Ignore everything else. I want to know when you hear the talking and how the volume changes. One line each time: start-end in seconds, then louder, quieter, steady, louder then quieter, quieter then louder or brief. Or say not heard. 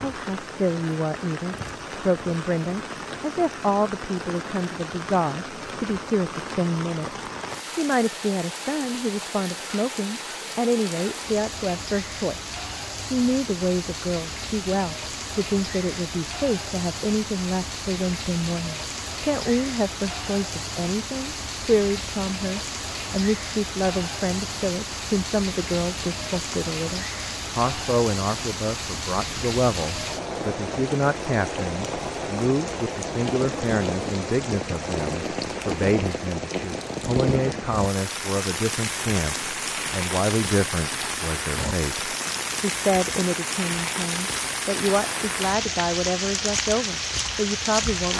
0.0-48.1 steady.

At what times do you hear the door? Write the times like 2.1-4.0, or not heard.
not heard.